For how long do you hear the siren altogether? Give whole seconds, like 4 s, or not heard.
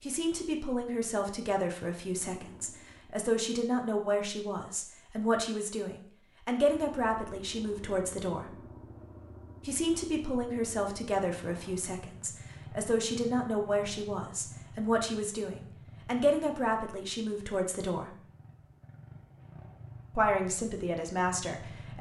not heard.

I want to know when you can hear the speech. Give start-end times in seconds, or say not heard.
0.0-8.6, 9.7-18.1, 20.1-21.9.